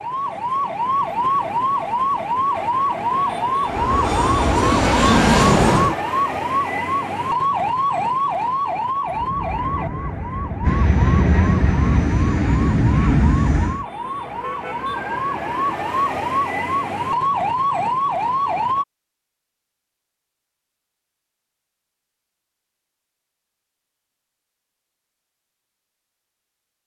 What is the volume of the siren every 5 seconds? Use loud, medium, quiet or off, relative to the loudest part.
loud, loud, medium, loud, off, off.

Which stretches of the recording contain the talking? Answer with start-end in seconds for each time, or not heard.
not heard.